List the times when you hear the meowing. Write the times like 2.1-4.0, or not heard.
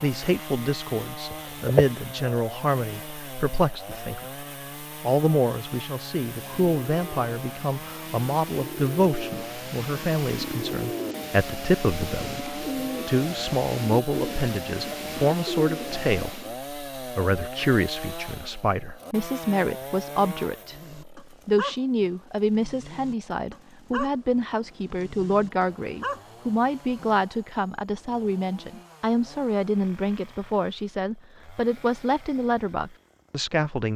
1.3-1.9.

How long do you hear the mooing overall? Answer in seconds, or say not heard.
not heard.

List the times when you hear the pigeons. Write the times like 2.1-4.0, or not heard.
6.3-16.6.